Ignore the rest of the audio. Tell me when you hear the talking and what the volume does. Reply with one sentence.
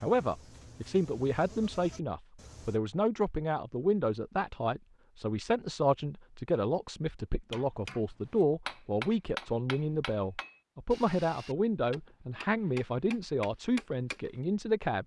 The talking can be heard from 0.0 to 15.0 s, at a steady volume.